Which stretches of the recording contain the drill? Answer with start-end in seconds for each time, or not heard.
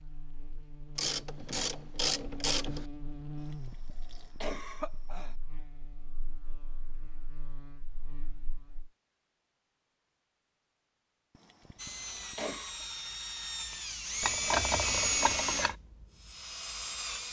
11.8-17.2.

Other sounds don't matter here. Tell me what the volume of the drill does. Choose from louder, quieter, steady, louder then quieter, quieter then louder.
louder then quieter.